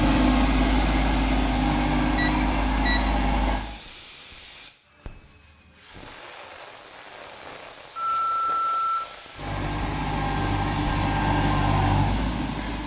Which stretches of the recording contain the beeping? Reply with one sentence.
The beeping can be heard from 2.1 to 3.0 s and from 8.0 to 9.0 s.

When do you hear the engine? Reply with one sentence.
The engine can be heard from 0.0 to 3.6 s and from 9.3 to 12.8 s.